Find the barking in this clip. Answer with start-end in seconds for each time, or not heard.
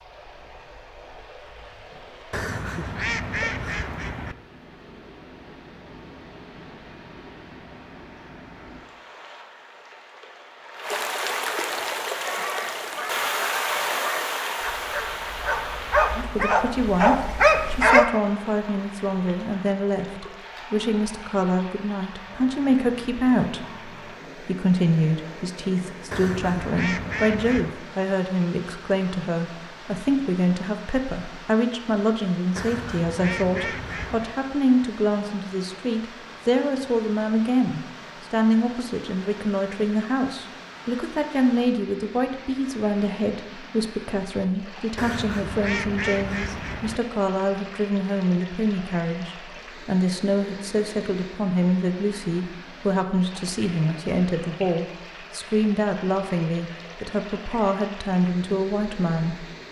11.8-18.1.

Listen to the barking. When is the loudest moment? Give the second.
18 s.